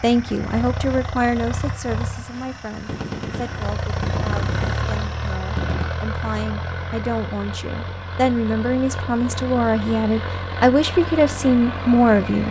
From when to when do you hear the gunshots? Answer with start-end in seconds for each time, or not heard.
2.9-5.9.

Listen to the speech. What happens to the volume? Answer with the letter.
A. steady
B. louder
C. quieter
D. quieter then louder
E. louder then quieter
D.